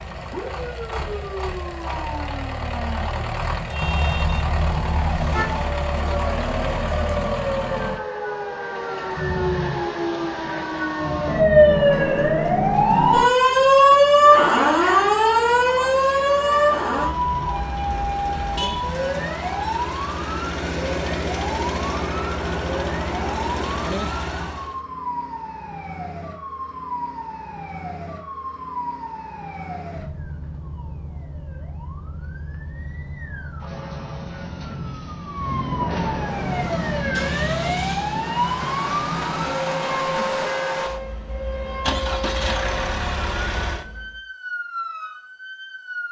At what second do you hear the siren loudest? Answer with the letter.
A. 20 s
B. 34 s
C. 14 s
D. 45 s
C.